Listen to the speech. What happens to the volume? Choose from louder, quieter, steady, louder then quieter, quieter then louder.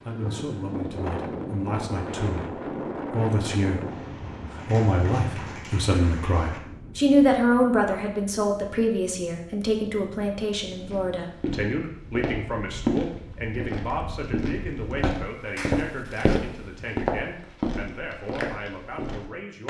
louder then quieter.